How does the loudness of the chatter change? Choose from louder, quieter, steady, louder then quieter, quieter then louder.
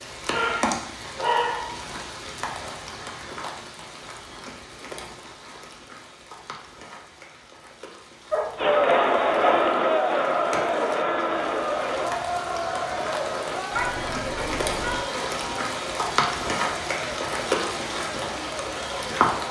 quieter.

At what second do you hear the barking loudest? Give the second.
1 s.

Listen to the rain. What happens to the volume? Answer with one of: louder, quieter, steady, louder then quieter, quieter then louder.
quieter then louder.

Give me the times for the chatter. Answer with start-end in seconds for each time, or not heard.
8.6-19.4.